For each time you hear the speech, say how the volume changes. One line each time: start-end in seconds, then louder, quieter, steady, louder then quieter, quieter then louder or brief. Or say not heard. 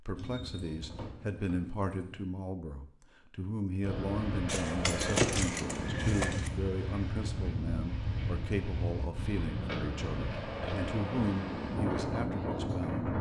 0.0-13.1 steady.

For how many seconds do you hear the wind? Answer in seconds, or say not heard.
9 s.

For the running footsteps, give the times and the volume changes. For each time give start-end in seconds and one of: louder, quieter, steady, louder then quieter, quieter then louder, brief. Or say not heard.
not heard.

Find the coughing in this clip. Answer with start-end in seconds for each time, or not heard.
not heard.